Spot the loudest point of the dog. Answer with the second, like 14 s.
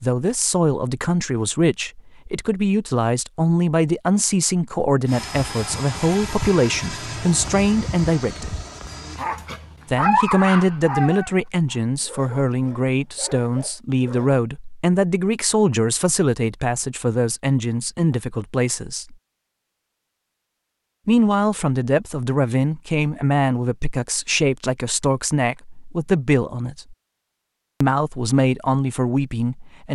10 s.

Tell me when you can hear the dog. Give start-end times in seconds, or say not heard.
8.8-14.4.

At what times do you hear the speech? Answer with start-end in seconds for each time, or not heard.
0.0-8.6, 9.8-19.1, 21.1-26.9, 27.8-29.9.